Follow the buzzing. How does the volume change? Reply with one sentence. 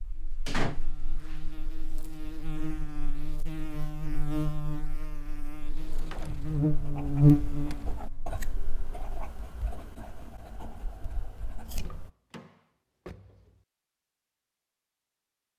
The volume of the buzzing goes up.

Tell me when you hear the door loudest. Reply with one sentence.
The loudest moment of the door is at 1 second.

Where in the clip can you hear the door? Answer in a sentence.
You can hear the door from 0.5 to 1.4 s, from 5.6 to 6.6 s, from 7.5 to 8.1 s and from 11.8 to 13.7 s.